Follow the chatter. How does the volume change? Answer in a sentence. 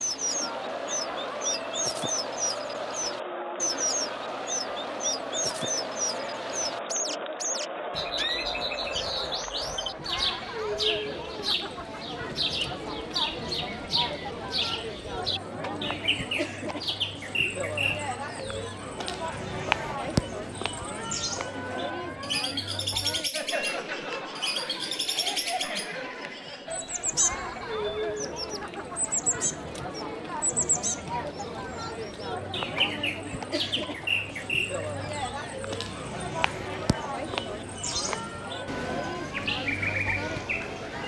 The volume of the chatter stays about the same.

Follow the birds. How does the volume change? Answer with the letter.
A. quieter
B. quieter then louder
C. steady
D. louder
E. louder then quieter
C.